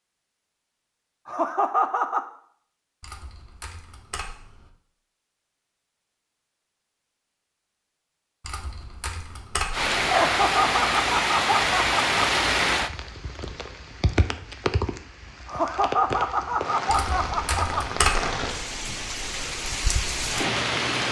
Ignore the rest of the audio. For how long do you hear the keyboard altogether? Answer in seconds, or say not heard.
5 s.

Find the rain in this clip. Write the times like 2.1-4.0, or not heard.
9.7-21.0.